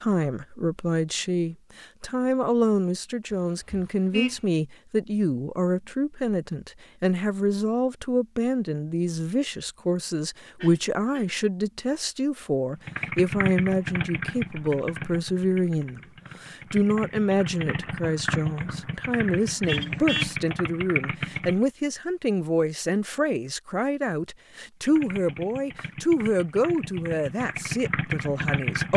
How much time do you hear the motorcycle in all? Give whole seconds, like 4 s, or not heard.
13 s.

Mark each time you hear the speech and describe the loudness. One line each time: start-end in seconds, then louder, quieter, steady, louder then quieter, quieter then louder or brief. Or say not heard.
0.0-28.9 steady.